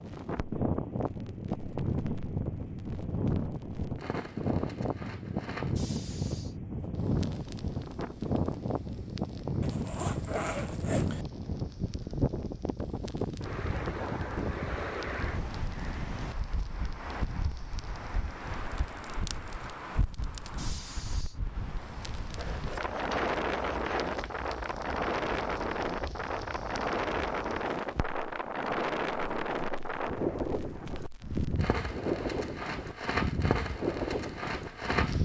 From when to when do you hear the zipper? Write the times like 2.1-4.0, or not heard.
9.6-11.2, 22.4-24.4.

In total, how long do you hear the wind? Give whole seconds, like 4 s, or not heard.
35 s.